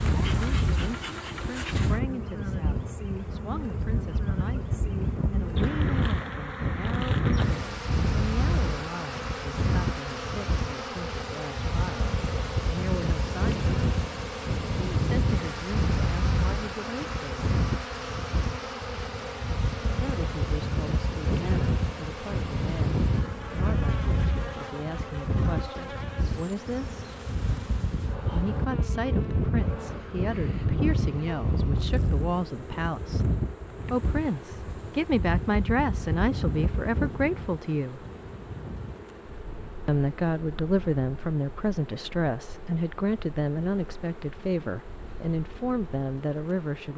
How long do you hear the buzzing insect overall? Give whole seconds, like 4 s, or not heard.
47 s.